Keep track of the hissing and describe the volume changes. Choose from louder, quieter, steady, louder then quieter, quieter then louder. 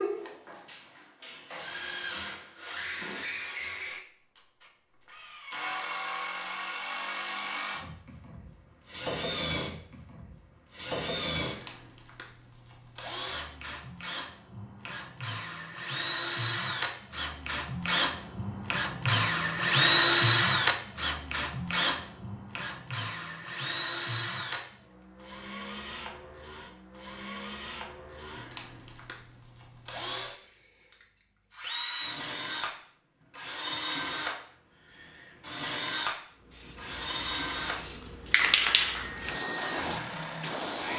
louder then quieter.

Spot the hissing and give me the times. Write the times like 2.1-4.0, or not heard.
36.5-40.9.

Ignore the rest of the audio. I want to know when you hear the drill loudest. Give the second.
20 s.